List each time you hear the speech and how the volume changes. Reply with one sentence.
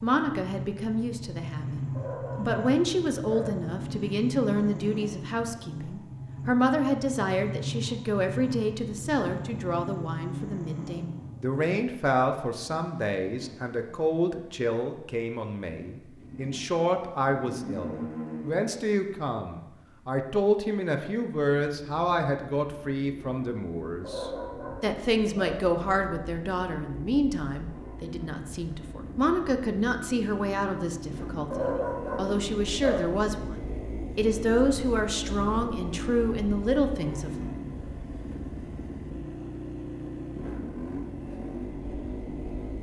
The speech can be heard from 0.0 to 37.5 s, at a steady volume.